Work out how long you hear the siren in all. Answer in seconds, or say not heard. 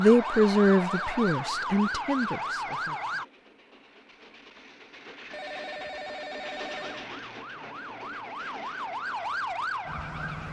7 s.